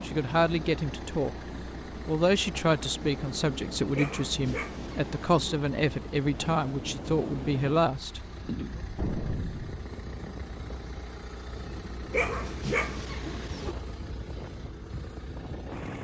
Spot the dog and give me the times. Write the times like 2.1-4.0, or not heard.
3.9-5.3, 12.1-13.8.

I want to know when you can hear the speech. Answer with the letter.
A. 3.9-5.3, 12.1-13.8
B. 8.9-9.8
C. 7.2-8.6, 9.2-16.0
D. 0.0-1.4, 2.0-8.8
D.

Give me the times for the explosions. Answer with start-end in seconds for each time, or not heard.
8.9-9.8.